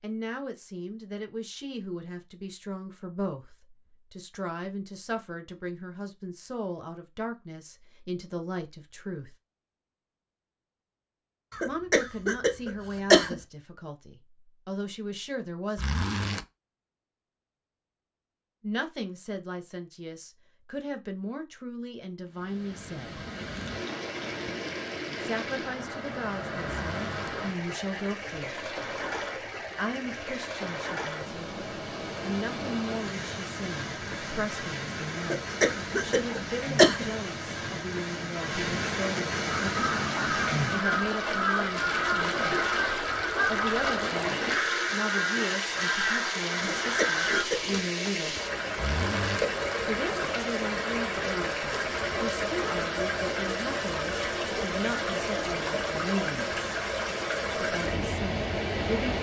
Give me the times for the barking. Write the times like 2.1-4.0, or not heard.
not heard.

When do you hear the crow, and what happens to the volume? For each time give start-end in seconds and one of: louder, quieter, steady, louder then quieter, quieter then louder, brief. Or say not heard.
39.5-47.5 steady.